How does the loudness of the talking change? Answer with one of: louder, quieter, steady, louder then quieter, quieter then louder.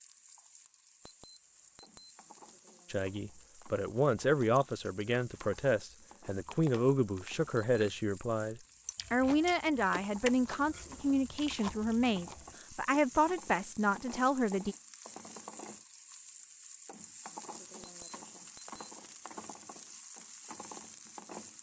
steady.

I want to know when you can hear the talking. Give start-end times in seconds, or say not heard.
2.9-14.8.